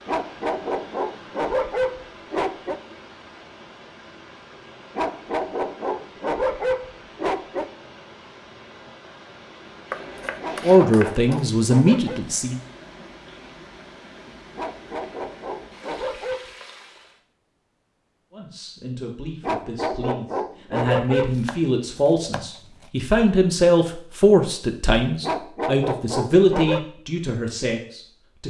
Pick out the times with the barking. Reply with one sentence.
The barking can be heard from 0.1 to 2.8 s, from 5.0 to 7.7 s, from 10.4 to 12.2 s, from 14.6 to 16.5 s, from 19.4 to 21.4 s and from 25.2 to 26.9 s.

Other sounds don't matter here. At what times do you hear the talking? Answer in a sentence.
The talking can be heard from 10.6 to 12.6 s and from 18.3 to 28.4 s.